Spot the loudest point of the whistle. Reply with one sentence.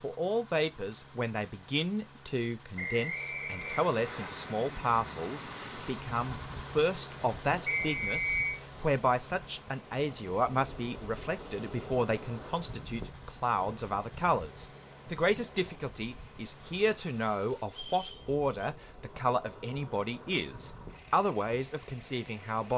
The volume of the whistle peaks at 8 seconds.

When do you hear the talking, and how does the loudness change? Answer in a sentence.
You can hear the talking from 0.0 to 22.7 s, at a steady volume.